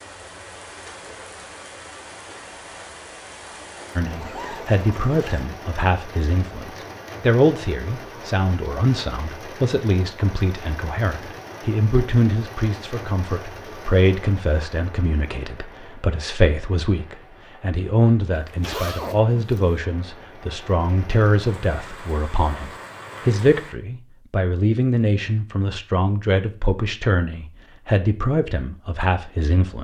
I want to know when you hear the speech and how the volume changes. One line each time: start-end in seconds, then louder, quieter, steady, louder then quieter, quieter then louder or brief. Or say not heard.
4.0-29.7 steady.